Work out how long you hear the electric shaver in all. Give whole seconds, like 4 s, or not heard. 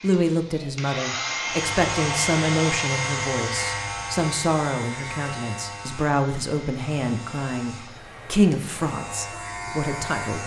9 s.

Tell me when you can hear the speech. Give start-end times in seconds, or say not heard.
0.0-10.4.